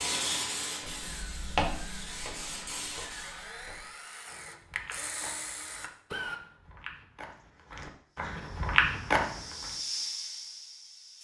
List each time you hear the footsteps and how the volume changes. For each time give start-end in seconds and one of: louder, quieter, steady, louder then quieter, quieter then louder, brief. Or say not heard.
0.8-9.8 quieter then louder.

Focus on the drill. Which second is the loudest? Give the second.
6 s.